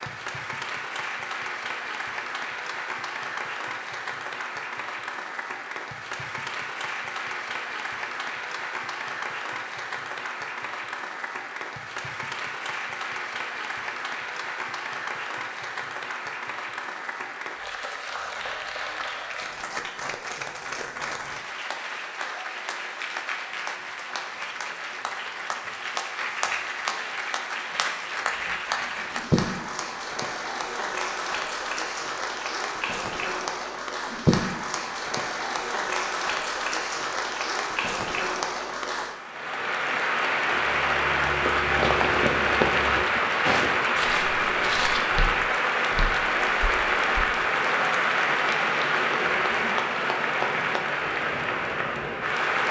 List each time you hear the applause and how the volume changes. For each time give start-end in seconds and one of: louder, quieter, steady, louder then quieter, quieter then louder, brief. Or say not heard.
0.0-52.6 louder.